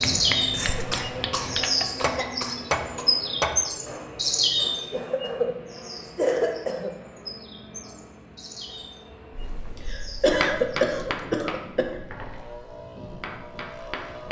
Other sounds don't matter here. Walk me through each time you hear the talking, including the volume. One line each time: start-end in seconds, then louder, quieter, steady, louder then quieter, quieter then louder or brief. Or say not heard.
not heard.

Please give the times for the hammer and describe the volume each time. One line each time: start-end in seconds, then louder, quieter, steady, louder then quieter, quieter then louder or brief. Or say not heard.
0.0-4.8 louder then quieter
9.3-14.2 quieter.